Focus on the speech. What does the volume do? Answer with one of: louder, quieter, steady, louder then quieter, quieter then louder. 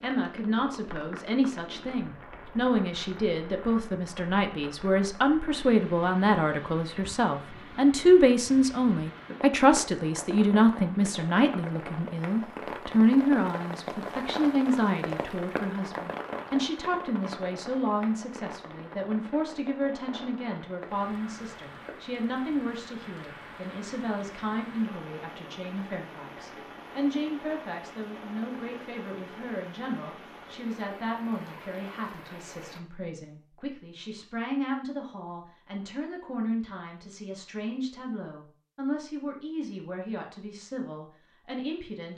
quieter.